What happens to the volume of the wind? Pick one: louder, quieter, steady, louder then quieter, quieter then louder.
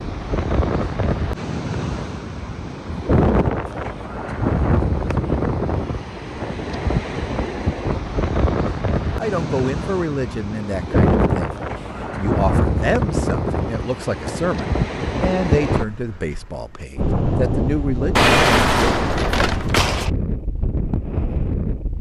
steady.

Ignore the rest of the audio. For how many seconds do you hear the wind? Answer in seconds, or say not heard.
22 s.